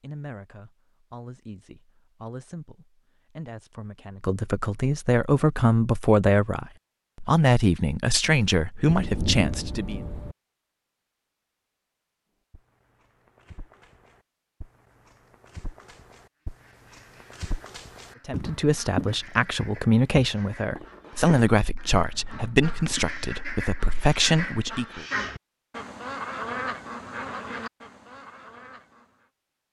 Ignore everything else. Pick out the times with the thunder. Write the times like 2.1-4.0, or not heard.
8.8-10.3.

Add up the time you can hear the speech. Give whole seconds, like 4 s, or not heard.
17 s.